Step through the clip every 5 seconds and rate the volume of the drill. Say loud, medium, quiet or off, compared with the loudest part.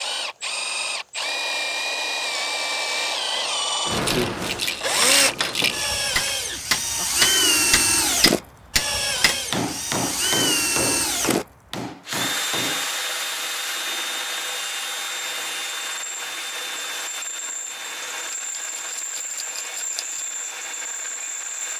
loud, loud, loud, medium, medium.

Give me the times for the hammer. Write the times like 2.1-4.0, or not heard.
4.6-12.9.